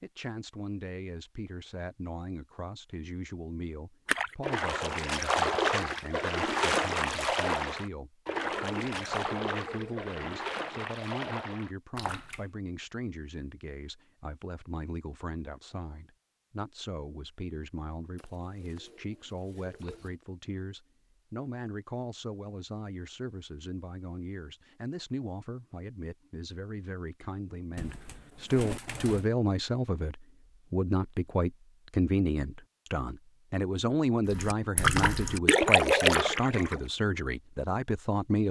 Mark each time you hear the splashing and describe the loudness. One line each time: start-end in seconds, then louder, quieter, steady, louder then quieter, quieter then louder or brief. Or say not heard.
4.0-12.4 quieter
34.2-36.8 brief.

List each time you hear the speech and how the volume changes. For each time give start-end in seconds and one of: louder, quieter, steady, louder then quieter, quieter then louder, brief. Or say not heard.
0.0-38.4 louder.